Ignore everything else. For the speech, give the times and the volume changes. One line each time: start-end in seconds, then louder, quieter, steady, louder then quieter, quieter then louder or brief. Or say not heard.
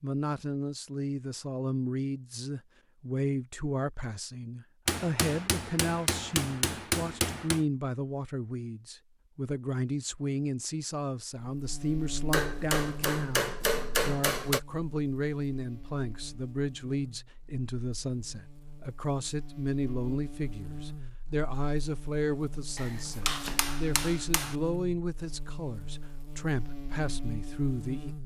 0.0-28.1 steady.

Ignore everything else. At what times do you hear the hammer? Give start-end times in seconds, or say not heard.
4.8-7.7, 12.3-14.6, 22.8-24.6.